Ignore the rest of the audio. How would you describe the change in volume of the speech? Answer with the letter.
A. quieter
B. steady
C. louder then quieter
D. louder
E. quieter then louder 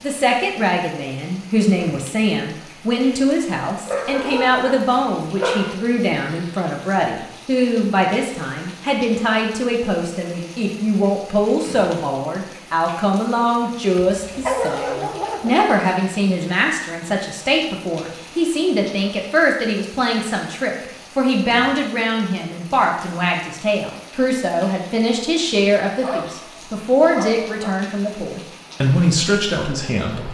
B.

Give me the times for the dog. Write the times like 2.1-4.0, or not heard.
3.9-5.8, 13.9-15.6, 25.9-27.8.